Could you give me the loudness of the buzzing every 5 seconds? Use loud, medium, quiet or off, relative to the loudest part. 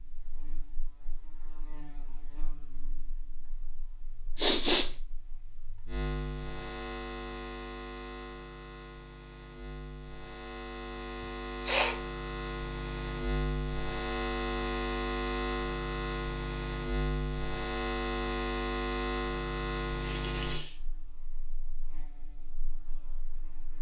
quiet, medium, loud, loud, medium.